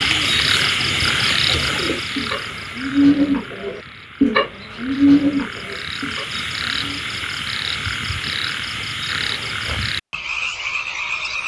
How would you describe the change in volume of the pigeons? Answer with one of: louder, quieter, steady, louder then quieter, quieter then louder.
louder then quieter.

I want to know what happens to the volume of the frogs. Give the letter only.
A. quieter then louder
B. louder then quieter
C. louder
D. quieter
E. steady
A.